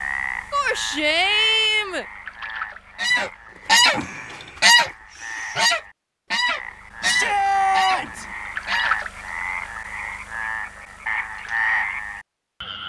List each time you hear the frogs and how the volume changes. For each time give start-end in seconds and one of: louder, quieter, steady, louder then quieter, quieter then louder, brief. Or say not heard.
0.0-12.8 quieter then louder.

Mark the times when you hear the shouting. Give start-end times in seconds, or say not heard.
0.5-2.0, 7.0-8.2.